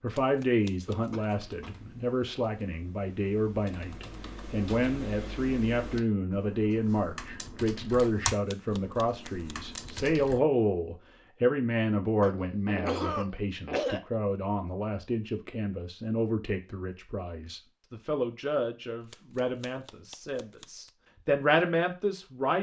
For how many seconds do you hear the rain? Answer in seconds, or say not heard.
not heard.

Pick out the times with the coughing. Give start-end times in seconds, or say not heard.
0.8-1.8, 12.2-14.0.